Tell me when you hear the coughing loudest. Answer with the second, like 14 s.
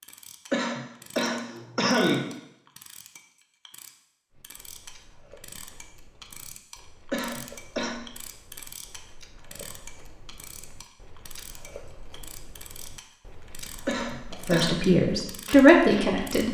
2 s.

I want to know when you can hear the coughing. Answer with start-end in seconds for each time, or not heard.
0.5-2.3, 7.1-8.0, 13.8-14.8.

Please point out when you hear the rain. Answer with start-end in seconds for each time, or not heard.
not heard.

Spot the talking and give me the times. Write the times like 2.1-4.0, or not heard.
14.3-16.4.